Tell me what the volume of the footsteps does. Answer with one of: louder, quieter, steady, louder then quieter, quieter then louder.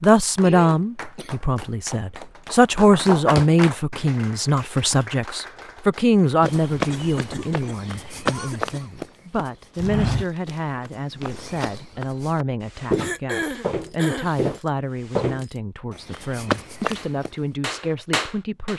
quieter then louder.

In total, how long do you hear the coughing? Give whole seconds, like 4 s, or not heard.
4 s.